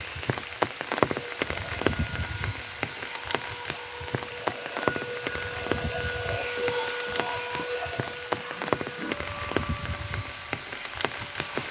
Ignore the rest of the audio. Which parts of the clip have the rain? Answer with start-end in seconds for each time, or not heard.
0.0-11.6.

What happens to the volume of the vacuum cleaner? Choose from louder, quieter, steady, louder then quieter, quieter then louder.
louder then quieter.